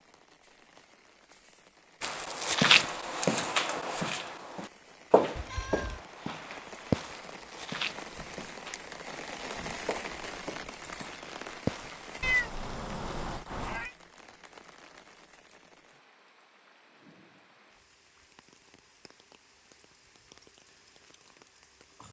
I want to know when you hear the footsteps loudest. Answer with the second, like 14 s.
3 s.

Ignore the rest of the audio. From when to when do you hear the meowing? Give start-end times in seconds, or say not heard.
5.3-6.0, 12.2-13.9.